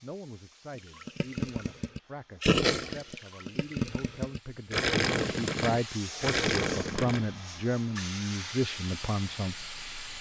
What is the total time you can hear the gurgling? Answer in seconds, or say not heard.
6 s.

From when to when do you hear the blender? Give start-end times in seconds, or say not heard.
not heard.